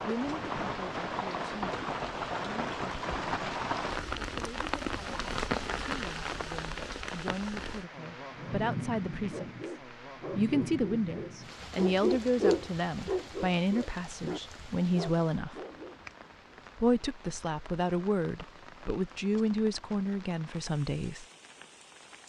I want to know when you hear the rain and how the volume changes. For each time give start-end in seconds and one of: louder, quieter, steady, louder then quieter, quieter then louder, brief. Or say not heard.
0.0-22.2 quieter.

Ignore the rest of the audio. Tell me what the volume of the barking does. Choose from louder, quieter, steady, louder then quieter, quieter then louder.
louder then quieter.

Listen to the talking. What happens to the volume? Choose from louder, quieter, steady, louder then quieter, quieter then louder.
louder.